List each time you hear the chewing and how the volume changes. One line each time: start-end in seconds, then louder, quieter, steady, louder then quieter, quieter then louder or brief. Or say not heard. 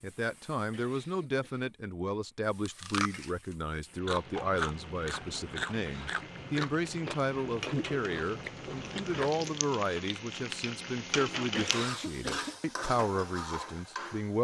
2.6-9.7 steady.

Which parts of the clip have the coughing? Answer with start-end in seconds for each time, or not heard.
0.7-2.4, 5.8-6.2, 11.5-12.6.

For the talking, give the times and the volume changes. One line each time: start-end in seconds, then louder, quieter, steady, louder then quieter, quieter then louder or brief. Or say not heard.
0.0-14.4 steady.